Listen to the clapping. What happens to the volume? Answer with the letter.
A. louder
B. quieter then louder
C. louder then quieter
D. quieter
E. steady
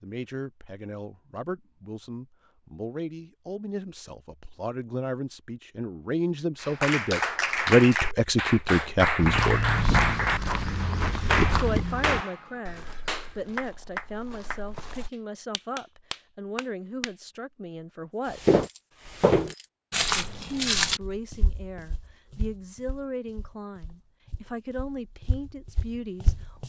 D.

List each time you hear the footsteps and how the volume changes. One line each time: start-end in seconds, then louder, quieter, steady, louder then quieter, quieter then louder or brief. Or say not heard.
9.2-15.1 quieter
18.3-26.6 quieter then louder.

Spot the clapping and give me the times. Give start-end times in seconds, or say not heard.
6.6-17.1.